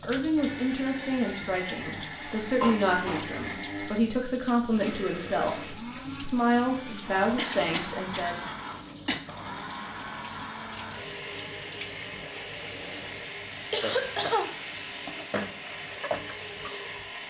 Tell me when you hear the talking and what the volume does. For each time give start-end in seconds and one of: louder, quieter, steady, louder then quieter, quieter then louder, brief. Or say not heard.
0.0-8.4 steady.